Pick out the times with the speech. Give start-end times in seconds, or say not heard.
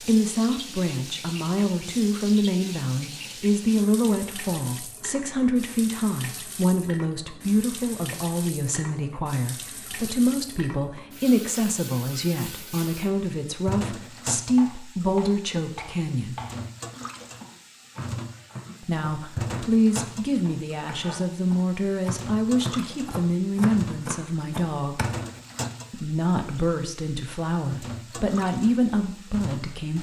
0.0-16.4, 18.8-25.1, 25.9-29.9.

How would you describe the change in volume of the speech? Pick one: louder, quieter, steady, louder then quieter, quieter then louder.
steady.